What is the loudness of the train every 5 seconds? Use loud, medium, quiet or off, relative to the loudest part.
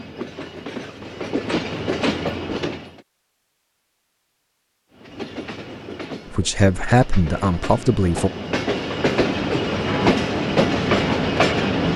medium, medium, loud.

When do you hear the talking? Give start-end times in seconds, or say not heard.
6.3-8.3.